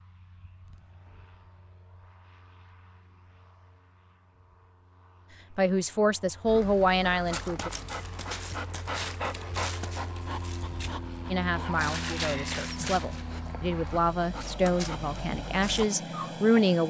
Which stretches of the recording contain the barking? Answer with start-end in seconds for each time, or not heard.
6.5-16.7.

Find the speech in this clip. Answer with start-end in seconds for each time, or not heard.
5.5-7.7, 11.3-16.8.